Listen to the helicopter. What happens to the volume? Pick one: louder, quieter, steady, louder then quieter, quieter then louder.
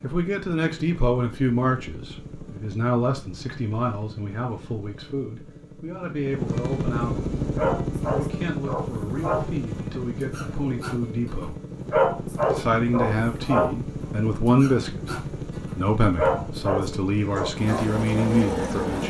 louder.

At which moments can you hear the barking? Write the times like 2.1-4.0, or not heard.
7.5-19.0.